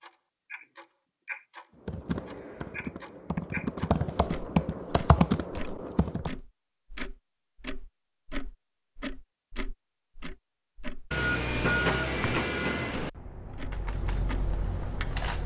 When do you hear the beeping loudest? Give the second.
12 s.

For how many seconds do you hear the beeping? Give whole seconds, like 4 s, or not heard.
2 s.